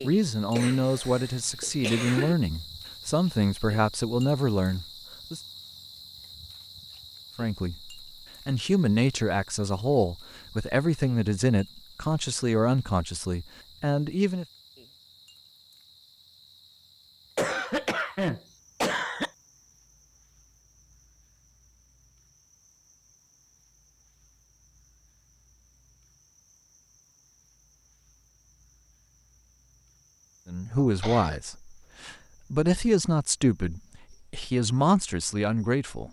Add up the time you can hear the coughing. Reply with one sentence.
You can hear the coughing for 4 seconds altogether.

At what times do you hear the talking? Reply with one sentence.
You can hear the talking from 0.0 to 5.4 s, from 7.3 to 14.4 s and from 30.4 to 36.0 s.